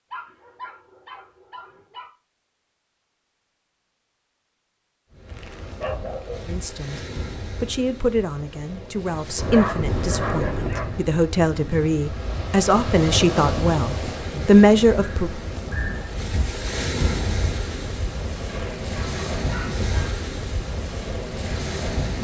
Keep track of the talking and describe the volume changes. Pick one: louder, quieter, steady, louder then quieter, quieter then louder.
louder.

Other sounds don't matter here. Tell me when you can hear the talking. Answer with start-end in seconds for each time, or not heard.
6.4-15.4.